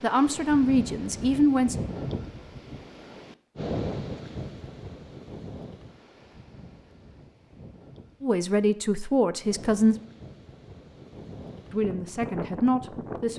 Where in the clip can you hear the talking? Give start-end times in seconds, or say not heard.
0.0-1.8, 8.2-9.9, 11.7-13.3.